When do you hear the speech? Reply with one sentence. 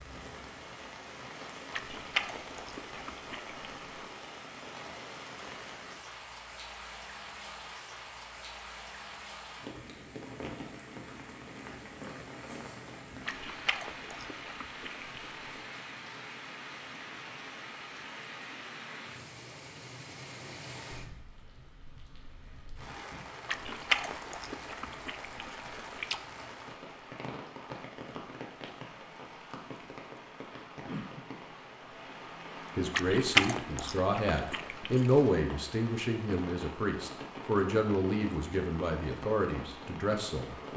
The speech can be heard from 32.8 to 40.7 s.